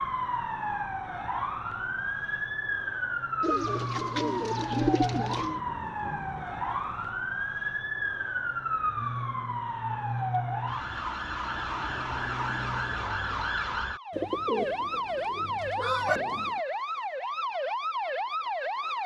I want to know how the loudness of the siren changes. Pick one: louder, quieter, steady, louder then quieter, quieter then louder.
steady.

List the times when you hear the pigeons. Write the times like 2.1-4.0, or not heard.
3.4-5.6, 14.1-16.6.